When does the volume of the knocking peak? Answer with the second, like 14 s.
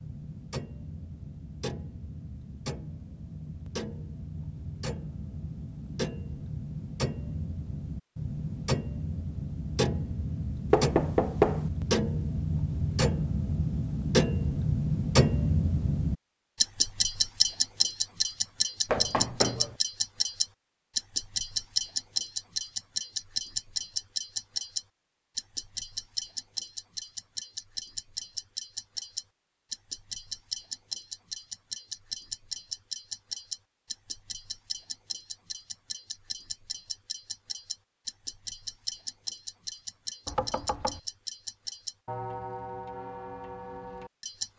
11 s.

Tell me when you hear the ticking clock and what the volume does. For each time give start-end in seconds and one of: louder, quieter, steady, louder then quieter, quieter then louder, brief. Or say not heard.
0.0-44.5 louder then quieter.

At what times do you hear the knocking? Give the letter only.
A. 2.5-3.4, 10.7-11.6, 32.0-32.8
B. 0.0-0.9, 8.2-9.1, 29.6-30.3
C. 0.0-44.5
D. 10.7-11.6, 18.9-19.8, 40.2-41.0
D.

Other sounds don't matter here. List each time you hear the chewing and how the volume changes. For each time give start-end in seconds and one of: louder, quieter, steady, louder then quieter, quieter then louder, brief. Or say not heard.
not heard.